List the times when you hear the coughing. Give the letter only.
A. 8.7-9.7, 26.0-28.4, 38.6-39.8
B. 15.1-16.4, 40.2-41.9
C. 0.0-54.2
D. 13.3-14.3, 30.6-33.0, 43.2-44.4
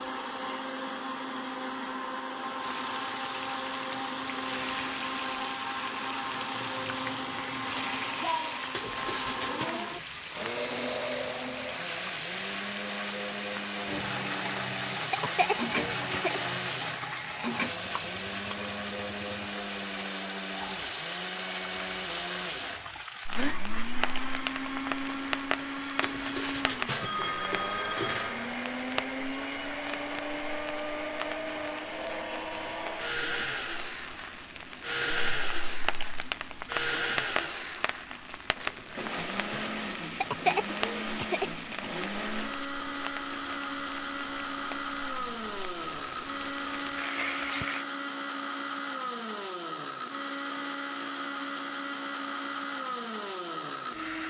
B.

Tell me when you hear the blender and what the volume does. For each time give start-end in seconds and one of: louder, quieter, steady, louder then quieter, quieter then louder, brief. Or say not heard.
0.0-54.2 steady.